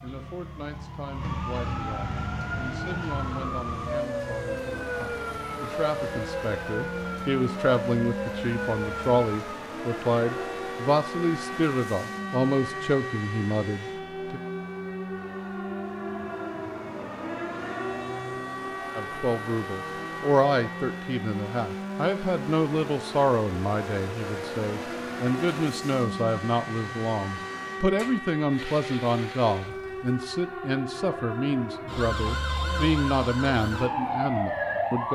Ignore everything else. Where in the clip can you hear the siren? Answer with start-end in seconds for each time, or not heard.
0.0-35.1.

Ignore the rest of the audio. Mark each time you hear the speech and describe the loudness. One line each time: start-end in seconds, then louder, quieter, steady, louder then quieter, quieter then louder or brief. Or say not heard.
0.0-14.4 louder
18.9-35.1 steady.